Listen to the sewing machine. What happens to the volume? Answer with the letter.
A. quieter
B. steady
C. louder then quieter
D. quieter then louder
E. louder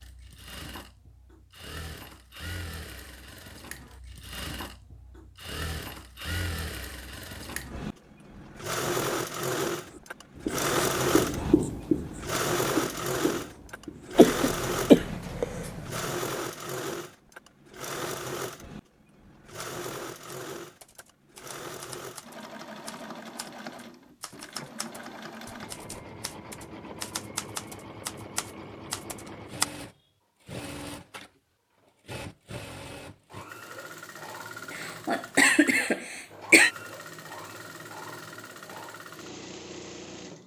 C.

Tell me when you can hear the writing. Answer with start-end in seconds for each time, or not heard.
9.8-16.1.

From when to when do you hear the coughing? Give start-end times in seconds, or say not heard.
14.2-15.7, 34.8-36.7.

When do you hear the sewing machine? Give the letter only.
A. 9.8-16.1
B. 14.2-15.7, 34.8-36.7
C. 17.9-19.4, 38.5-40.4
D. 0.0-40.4
D.